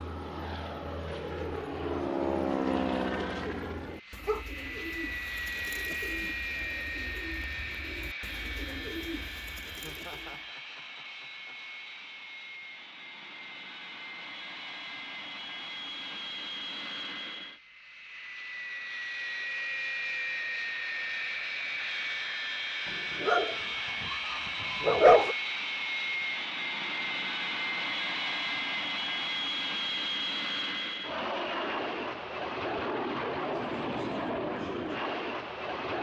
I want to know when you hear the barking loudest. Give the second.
25 s.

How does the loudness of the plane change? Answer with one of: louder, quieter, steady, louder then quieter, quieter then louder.
quieter then louder.